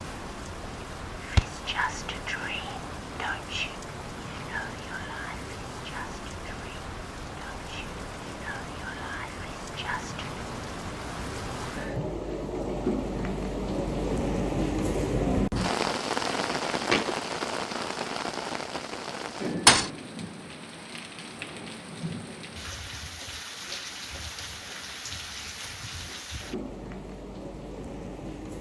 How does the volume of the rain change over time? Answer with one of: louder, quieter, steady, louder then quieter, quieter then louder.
louder then quieter.